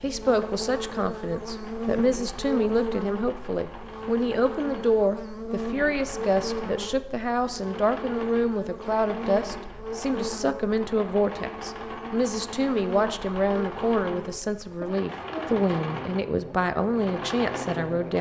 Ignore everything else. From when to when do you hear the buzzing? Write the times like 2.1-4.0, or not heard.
0.0-18.1.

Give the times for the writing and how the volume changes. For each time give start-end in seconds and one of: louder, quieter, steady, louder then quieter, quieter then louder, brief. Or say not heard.
not heard.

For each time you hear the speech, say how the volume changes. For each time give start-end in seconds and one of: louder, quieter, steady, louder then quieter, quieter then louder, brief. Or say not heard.
0.0-18.1 steady.